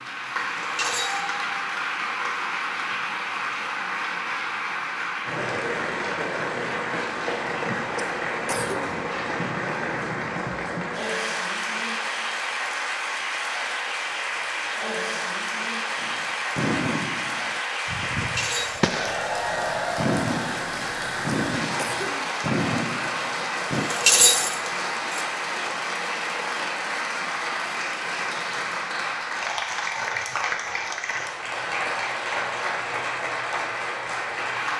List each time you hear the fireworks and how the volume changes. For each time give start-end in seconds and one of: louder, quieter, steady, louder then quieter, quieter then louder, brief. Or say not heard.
15.9-23.9 steady.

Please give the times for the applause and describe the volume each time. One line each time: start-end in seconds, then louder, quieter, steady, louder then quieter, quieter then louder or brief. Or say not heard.
0.0-34.7 steady.